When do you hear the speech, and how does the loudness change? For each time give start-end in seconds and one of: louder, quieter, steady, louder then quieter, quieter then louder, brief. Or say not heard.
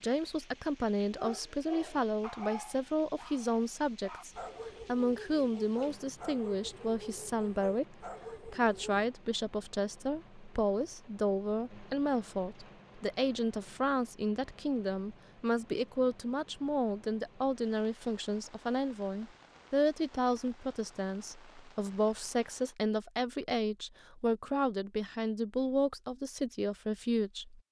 0.0-27.6 steady.